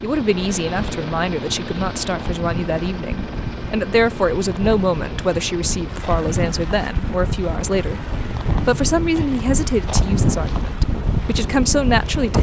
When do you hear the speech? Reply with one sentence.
You can hear the speech from 0.0 to 12.3 s.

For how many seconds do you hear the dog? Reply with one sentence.
You can't hear the dog here.